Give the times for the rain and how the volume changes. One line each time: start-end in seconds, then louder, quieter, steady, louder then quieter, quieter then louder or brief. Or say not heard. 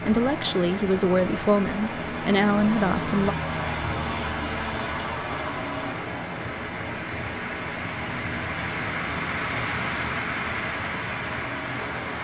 0.0-12.1 louder.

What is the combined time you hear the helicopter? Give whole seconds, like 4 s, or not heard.
12 s.